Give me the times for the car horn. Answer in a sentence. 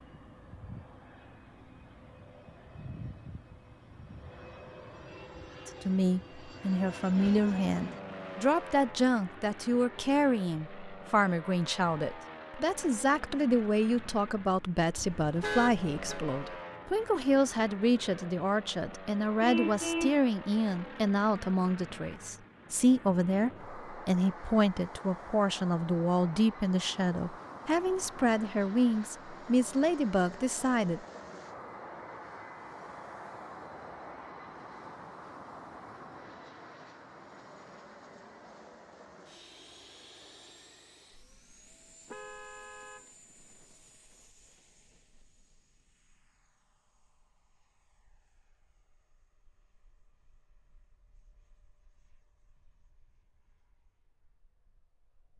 The car horn can be heard from 14.9 to 16.2 s, from 19.4 to 20.2 s and from 42.0 to 43.8 s.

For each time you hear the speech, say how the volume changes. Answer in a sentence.
The speech can be heard from 5.7 to 31.0 s, at a steady volume.